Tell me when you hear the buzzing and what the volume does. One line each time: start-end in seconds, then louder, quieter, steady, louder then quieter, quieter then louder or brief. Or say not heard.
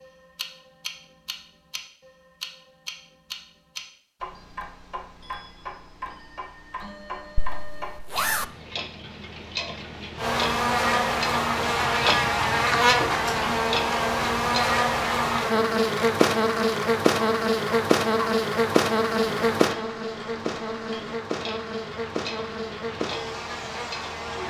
10.2-24.4 quieter.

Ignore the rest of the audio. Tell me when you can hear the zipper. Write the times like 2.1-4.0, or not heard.
7.3-8.4.